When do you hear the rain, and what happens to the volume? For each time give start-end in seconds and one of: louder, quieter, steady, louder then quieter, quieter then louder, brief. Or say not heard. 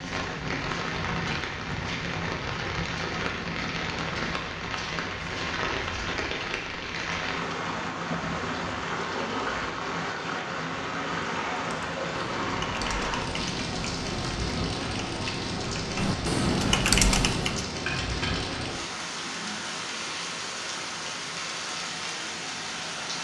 0.0-23.1 steady.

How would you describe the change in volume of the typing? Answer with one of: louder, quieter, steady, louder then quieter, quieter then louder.
louder.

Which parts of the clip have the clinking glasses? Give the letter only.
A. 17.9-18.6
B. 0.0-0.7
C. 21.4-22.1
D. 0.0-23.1
A.